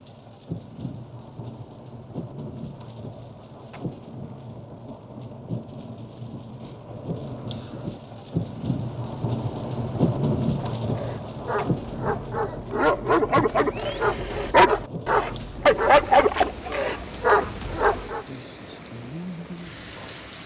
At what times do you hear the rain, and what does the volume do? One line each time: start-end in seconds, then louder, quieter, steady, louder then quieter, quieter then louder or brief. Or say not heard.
0.0-20.4 louder then quieter.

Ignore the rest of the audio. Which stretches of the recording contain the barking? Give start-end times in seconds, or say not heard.
10.8-18.2.